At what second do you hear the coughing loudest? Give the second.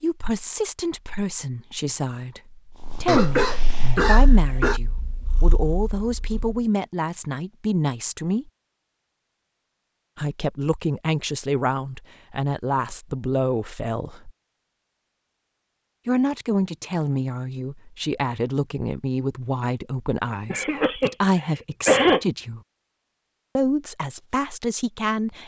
22 s.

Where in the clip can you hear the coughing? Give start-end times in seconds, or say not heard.
3.0-4.8, 20.5-22.2.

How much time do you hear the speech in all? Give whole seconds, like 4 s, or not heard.
21 s.